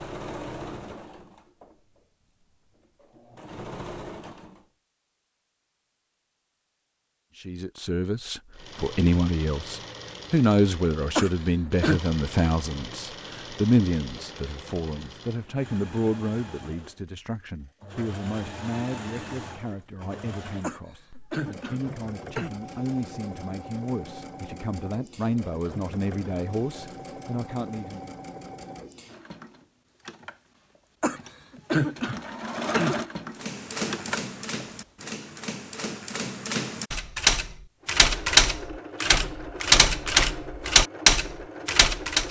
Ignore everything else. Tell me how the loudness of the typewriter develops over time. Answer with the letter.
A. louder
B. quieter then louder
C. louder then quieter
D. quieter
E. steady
A.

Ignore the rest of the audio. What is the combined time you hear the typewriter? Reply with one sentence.
The typewriter can be heard for 9 seconds in total.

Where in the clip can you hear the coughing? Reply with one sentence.
The coughing can be heard from 11.2 to 12.0 s, from 20.6 to 22.5 s and from 31.0 to 33.0 s.